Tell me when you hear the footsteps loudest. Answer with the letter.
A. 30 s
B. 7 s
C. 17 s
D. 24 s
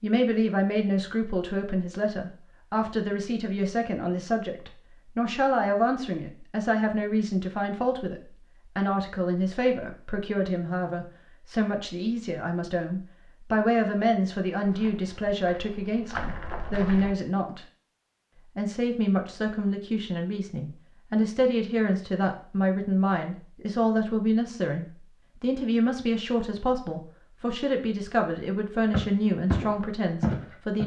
A.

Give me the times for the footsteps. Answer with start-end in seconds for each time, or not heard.
14.6-17.1, 28.9-30.8.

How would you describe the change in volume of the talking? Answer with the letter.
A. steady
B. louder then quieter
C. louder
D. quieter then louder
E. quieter
A.